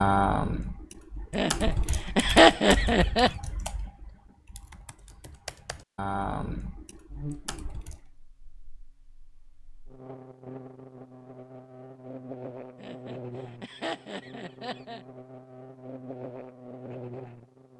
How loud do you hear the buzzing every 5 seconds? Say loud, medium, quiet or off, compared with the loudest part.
off, loud, loud, loud.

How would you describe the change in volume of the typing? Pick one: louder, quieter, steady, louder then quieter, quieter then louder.
quieter then louder.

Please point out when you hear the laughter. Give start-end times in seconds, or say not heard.
1.3-3.3, 12.8-15.1.